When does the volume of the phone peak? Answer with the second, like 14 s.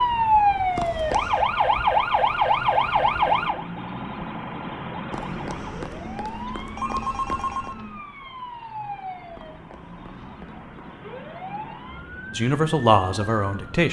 7 s.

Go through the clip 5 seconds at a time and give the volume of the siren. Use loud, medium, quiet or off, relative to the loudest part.
loud, quiet, quiet.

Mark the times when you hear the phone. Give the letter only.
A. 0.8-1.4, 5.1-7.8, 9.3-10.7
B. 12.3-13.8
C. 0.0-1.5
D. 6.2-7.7
A.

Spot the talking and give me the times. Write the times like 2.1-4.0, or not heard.
12.3-13.8.